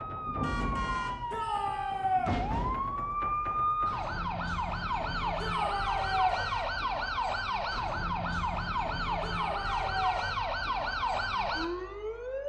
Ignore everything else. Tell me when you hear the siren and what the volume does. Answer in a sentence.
The siren can be heard from 0.0 to 12.4 s, at a steady volume.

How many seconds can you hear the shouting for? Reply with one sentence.
You can hear the shouting for 3 seconds altogether.